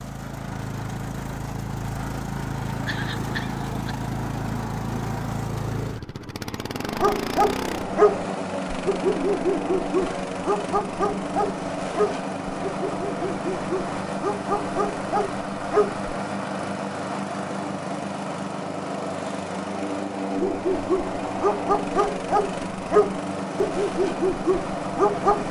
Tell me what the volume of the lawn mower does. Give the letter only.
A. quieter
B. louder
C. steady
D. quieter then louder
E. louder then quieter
C.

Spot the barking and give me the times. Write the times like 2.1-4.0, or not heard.
6.8-16.0, 20.4-25.4.